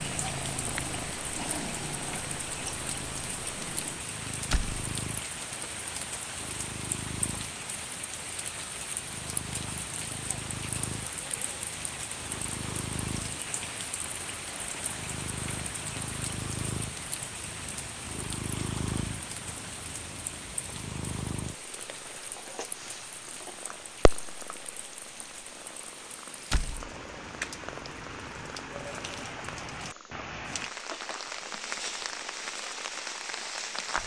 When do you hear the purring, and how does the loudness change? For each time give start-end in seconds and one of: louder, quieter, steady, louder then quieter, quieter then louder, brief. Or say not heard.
0.0-34.0 quieter.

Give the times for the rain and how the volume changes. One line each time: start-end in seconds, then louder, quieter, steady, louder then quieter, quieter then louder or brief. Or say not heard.
0.0-34.0 quieter then louder.